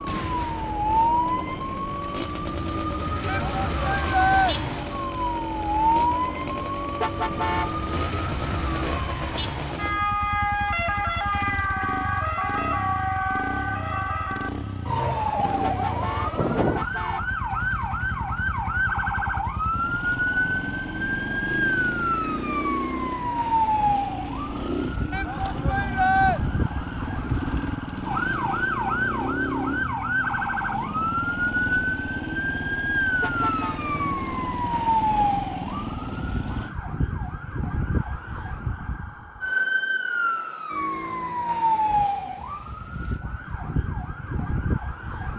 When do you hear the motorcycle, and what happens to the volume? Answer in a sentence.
You can hear the motorcycle from 0.0 to 36.8 s, at a steady volume.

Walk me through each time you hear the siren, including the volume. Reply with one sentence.
You can hear the siren from 0.0 to 45.3 s, at a steady volume.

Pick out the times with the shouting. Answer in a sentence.
The shouting can be heard from 3.2 to 4.5 s and from 25.1 to 26.4 s.